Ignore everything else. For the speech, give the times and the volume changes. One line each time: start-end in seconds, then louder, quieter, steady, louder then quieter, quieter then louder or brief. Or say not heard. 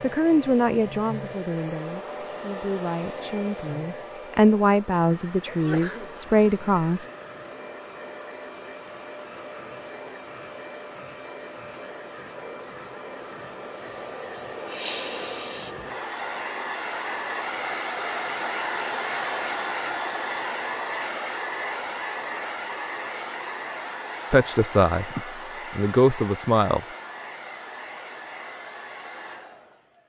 0.0-7.1 quieter then louder
24.3-25.1 brief
25.8-26.8 brief.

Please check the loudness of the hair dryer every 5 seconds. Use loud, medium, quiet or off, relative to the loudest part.
medium, medium, medium, loud, loud, medium.